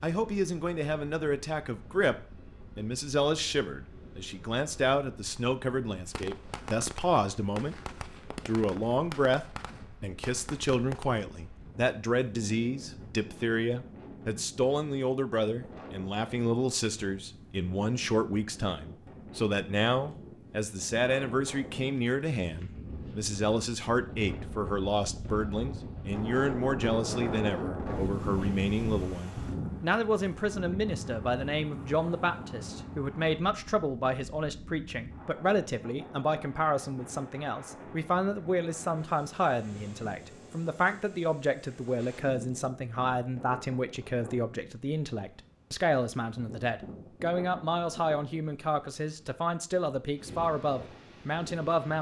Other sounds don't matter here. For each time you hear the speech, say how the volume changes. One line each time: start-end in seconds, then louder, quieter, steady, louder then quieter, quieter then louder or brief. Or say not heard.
0.0-7.8 steady
8.4-51.9 steady.